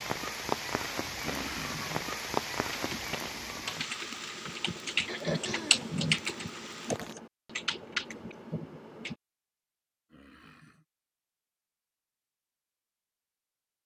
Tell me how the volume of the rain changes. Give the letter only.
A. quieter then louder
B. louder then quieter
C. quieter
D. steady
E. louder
C.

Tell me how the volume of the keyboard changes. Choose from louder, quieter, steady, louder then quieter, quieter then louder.
louder then quieter.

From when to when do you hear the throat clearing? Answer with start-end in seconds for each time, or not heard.
1.2-2.0, 5.0-5.9, 10.1-10.8.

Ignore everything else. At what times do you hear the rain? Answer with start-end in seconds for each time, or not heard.
0.0-7.2.